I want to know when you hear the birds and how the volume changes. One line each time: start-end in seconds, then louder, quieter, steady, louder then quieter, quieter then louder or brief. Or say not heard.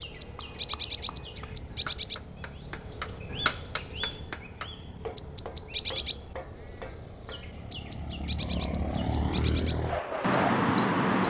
0.0-11.2 quieter then louder.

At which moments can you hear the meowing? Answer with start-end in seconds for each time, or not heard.
not heard.